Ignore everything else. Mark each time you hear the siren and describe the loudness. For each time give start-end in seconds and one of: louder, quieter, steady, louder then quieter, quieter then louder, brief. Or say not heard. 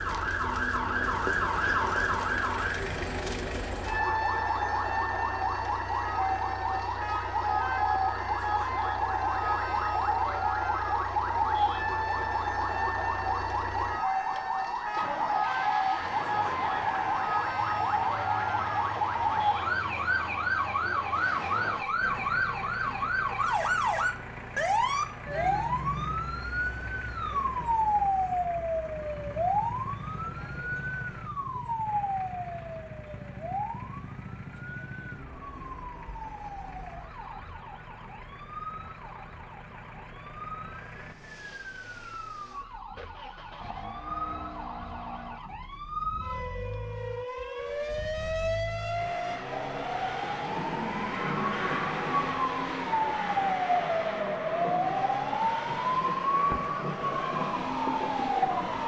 0.0-58.8 quieter then louder.